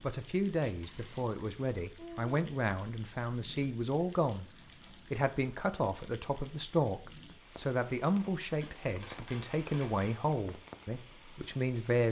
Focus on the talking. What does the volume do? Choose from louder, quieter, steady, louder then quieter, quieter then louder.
steady.